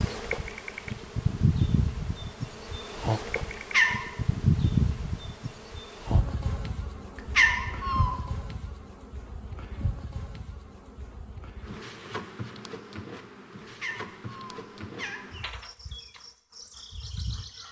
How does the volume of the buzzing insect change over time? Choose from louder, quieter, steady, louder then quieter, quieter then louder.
quieter.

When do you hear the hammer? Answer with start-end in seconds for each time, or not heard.
not heard.